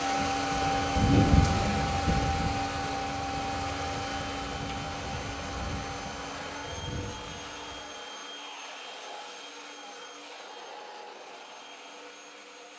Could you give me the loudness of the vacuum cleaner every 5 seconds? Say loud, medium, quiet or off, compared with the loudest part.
loud, medium, quiet.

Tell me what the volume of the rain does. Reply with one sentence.
The volume of the rain goes down.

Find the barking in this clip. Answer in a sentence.
The barking can't be heard in this clip.